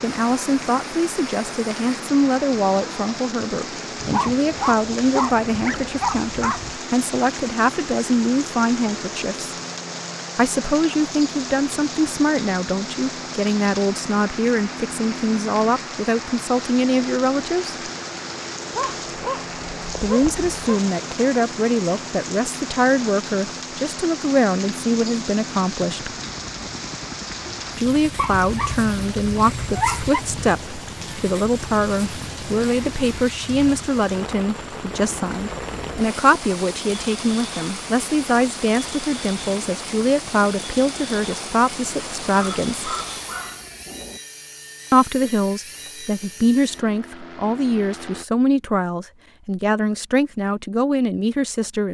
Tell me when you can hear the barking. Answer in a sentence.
The barking can be heard from 4.0 to 6.8 s, from 18.7 to 20.8 s, from 28.1 to 30.2 s and from 42.2 to 44.2 s.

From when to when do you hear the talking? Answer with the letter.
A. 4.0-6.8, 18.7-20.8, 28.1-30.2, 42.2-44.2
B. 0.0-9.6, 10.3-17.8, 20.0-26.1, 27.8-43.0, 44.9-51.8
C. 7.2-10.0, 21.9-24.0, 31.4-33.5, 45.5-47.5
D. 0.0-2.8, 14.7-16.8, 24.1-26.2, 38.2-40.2
B.